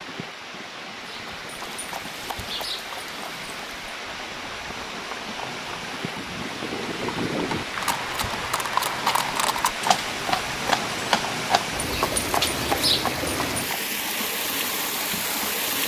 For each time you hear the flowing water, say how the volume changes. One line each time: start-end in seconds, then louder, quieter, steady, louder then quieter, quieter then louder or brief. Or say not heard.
0.0-15.8 louder.